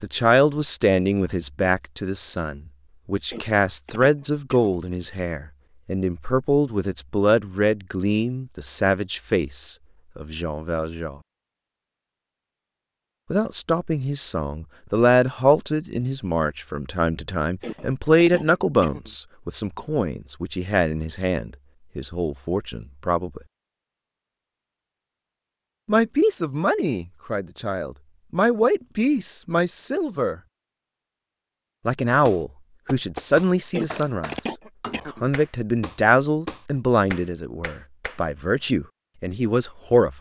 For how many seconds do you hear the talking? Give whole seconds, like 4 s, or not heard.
34 s.